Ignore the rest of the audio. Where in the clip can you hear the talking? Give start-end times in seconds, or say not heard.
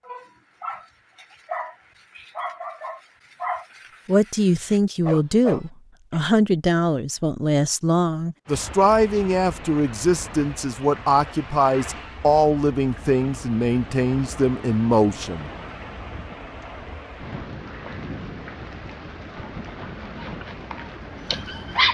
4.0-15.5.